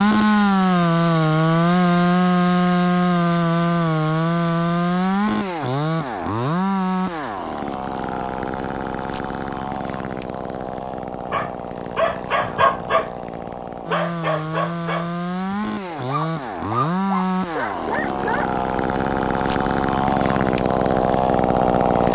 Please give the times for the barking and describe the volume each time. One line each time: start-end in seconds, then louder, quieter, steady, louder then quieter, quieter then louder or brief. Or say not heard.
11.3-13.1 brief
13.9-18.6 quieter then louder.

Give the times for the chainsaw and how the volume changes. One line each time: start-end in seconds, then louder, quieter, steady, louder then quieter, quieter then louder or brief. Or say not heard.
0.0-22.1 quieter then louder.